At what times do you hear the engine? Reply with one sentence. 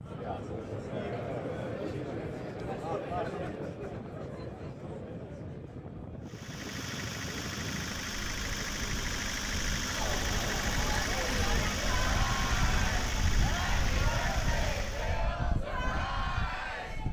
You can hear the engine from 6.2 to 15.3 s.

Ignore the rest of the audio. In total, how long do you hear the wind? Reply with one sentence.
The wind can be heard for 17 seconds in total.